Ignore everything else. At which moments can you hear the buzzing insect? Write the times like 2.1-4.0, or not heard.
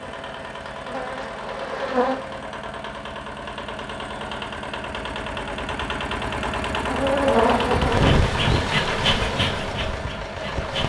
0.0-2.5, 6.8-10.8.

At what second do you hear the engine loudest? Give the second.
8 s.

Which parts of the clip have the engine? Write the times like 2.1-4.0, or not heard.
0.0-10.8.